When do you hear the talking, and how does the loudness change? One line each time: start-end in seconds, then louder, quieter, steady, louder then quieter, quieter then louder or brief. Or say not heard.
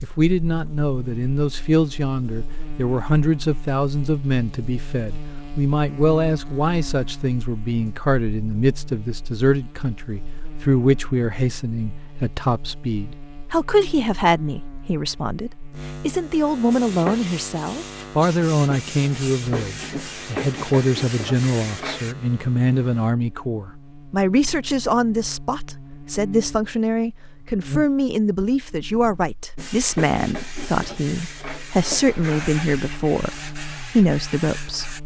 0.0-35.0 steady.